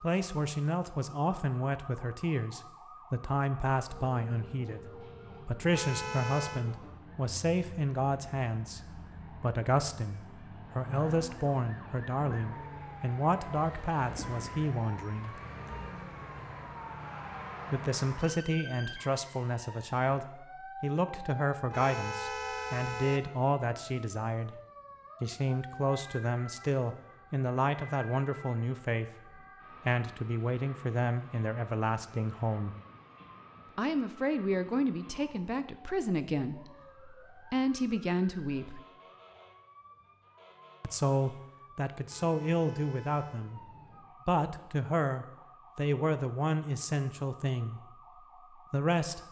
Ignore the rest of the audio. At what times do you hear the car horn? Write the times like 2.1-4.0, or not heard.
5.7-6.7, 21.7-23.3, 42.0-43.5.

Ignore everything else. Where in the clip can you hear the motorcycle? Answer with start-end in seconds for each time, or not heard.
not heard.